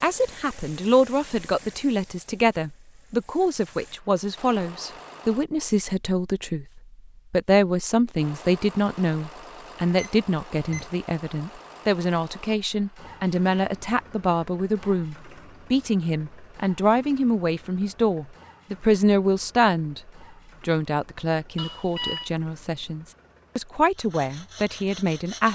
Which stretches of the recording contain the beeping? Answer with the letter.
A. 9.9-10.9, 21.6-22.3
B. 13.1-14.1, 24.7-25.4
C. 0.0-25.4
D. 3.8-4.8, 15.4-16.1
A.